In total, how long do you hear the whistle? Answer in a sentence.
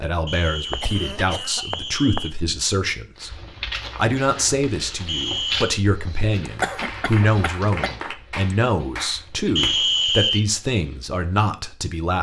The whistle can be heard for 4 seconds in total.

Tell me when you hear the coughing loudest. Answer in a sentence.
The volume of the coughing peaks at 7 seconds.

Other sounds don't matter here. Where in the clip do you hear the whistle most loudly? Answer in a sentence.
The volume of the whistle peaks at 10 seconds.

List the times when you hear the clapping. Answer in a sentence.
The clapping can be heard from 6.5 to 9.8 s.